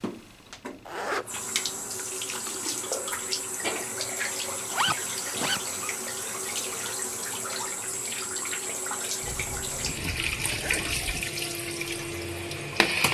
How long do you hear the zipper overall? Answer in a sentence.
The zipper can be heard for 5 seconds in total.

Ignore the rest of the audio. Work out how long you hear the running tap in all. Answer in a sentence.
The running tap can be heard for 13 seconds in total.